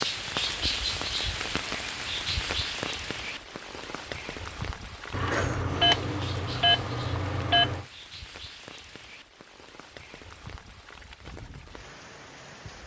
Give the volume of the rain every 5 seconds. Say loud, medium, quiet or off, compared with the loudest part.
loud, medium, quiet.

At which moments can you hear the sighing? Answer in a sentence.
You can't hear the sighing here.